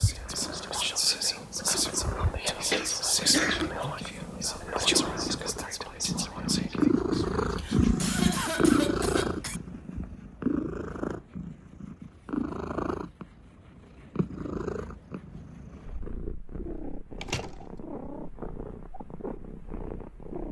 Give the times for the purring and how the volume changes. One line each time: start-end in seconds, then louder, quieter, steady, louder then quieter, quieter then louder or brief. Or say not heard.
0.0-20.4 louder then quieter.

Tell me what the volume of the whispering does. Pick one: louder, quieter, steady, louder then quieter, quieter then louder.
quieter.